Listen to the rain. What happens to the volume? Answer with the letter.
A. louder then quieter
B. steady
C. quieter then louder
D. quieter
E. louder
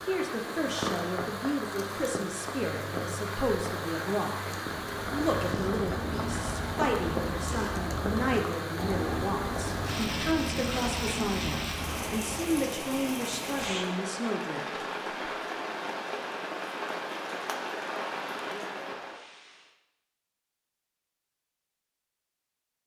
B.